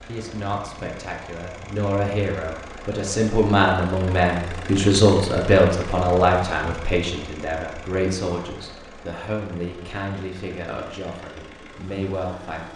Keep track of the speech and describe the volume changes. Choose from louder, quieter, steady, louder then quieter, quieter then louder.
louder then quieter.